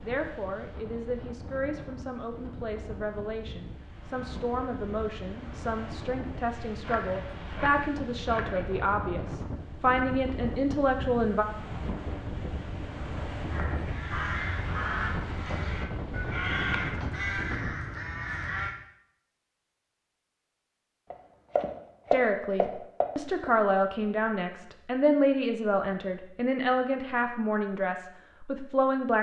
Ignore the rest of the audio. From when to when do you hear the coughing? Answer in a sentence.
You can't hear the coughing here.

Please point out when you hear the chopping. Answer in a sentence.
The chopping can be heard from 6.8 to 8.7 s and from 21.1 to 23.5 s.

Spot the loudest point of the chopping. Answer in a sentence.
The loudest moment of the chopping is at 22 seconds.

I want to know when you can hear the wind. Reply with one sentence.
You can hear the wind from 0.0 to 17.8 s.